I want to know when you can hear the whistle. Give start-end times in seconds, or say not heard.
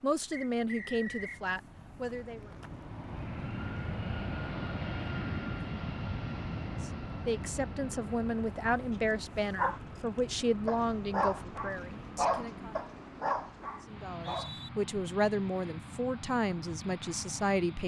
0.3-1.4, 14.1-14.7.